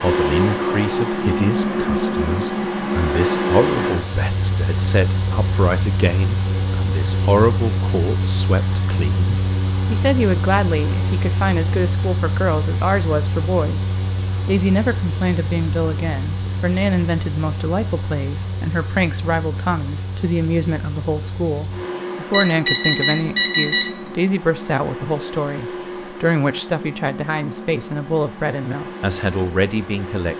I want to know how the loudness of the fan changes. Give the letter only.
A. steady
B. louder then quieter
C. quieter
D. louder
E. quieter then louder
C.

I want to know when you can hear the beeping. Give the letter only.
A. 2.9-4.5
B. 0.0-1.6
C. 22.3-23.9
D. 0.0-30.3
C.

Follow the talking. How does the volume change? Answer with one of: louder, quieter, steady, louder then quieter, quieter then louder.
steady.